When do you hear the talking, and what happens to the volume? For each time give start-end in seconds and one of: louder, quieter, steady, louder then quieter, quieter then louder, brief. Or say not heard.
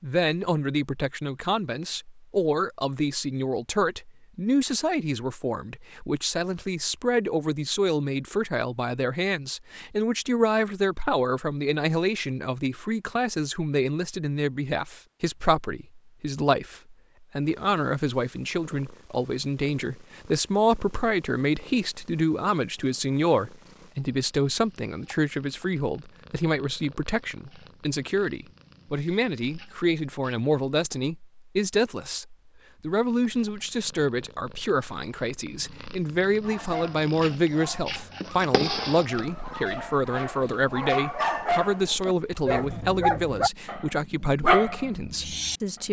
0.0-45.8 steady.